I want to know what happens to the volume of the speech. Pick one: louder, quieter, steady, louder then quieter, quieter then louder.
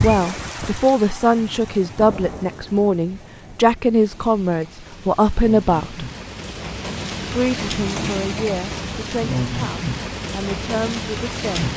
quieter.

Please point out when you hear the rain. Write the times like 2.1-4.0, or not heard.
0.0-11.7.